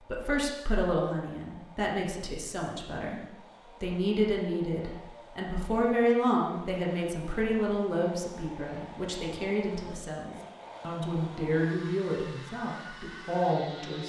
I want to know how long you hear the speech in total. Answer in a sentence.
The speech can be heard for 14 seconds in total.